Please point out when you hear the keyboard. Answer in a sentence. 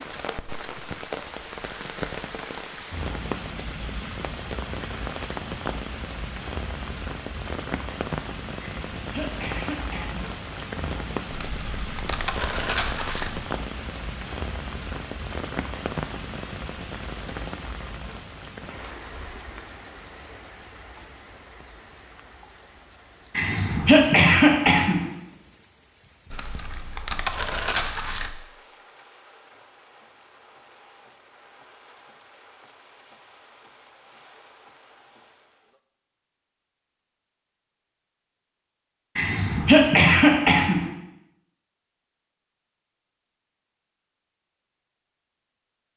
The keyboard can't be heard in this clip.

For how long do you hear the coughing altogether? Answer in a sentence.
The coughing can be heard for 5 seconds in total.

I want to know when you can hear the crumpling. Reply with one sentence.
The crumpling can be heard from 11.3 to 13.3 s and from 26.3 to 28.3 s.